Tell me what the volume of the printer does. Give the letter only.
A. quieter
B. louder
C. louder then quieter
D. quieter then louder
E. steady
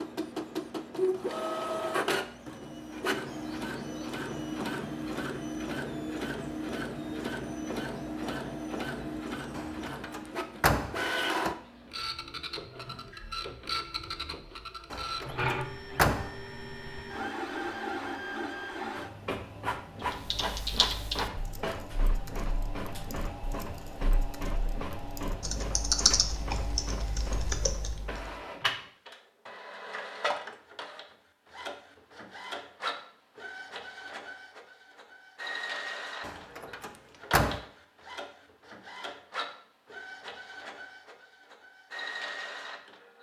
A.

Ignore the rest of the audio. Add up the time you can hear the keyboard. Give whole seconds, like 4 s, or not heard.
8 s.